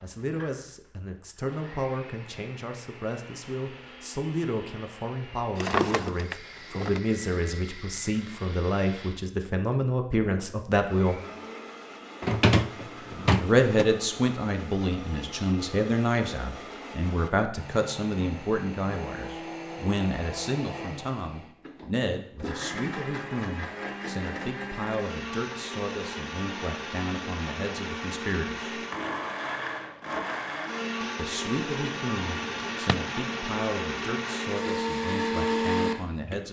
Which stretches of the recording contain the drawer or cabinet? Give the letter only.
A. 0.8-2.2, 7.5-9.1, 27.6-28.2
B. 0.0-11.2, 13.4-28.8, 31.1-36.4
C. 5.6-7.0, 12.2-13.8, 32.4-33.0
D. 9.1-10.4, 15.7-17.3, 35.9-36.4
C.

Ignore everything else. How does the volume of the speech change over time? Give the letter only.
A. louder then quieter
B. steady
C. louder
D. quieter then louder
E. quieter
A.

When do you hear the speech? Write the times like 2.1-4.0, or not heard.
0.0-11.2, 13.4-28.8, 31.1-36.4.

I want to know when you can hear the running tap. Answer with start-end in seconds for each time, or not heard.
not heard.